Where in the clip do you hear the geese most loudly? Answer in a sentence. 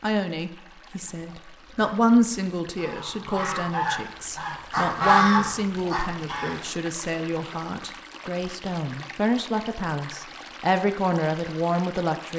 The loudest moment of the geese is at 5 seconds.